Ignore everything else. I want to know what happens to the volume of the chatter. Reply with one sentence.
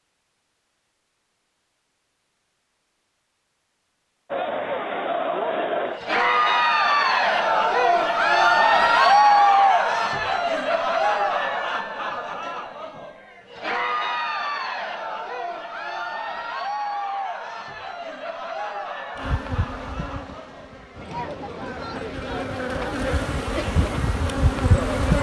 The volume of the chatter goes down.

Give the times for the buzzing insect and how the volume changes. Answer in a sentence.
The buzzing insect can be heard from 19.1 to 25.1 s, getting quieter then louder.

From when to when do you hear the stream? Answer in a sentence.
The stream can't be heard in this clip.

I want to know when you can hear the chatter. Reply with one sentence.
You can hear the chatter from 4.3 to 25.1 s.